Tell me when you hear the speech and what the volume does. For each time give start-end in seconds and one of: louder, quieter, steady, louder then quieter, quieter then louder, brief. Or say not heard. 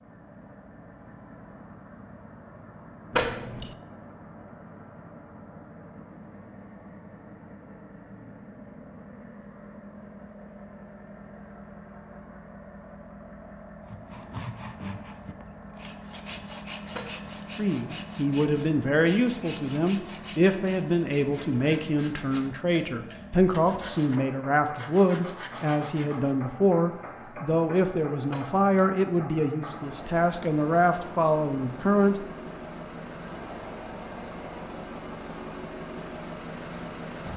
17.6-32.2 steady.